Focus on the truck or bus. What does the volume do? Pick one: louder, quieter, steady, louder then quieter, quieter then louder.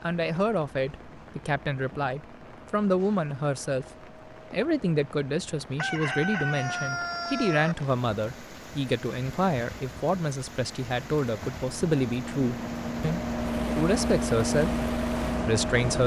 louder.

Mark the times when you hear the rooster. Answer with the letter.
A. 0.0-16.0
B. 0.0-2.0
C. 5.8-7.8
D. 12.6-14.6
C.